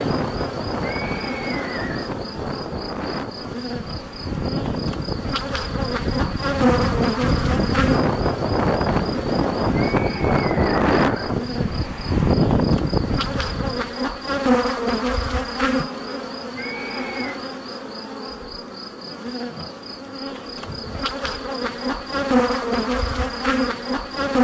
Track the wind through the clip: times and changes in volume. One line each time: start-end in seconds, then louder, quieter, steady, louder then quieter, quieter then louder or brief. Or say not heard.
0.0-13.9 louder.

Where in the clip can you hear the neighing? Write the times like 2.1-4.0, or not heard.
0.8-2.1, 9.8-11.4, 16.6-17.4.